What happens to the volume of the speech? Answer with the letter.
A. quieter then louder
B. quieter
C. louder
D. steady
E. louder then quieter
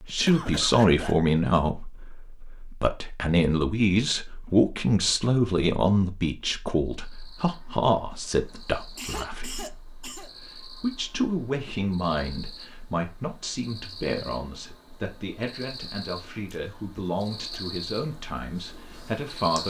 B.